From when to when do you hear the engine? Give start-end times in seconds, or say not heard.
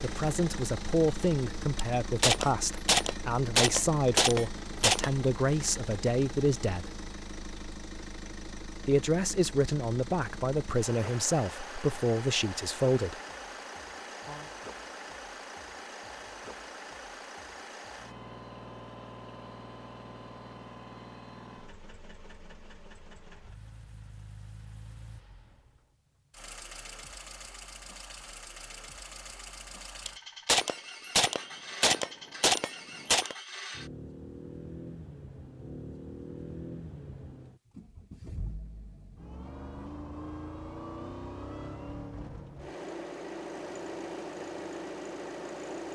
0.0-45.9.